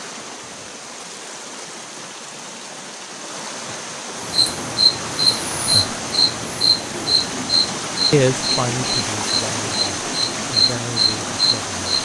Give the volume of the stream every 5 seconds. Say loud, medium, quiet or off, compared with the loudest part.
medium, loud, loud.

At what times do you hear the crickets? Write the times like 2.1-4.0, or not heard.
4.2-11.9.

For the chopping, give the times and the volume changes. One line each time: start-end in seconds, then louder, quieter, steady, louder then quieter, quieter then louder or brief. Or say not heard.
not heard.